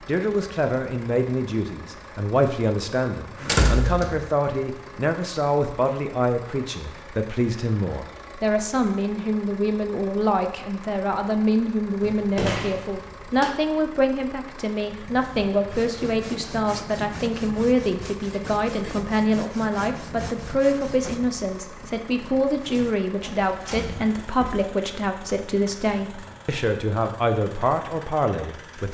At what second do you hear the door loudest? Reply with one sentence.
The volume of the door peaks at 4 seconds.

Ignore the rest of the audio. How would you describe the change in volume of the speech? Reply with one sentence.
The volume of the speech stays about the same.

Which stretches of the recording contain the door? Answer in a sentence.
You can hear the door from 3.4 to 4.2 s, from 12.0 to 13.5 s and from 23.2 to 24.7 s.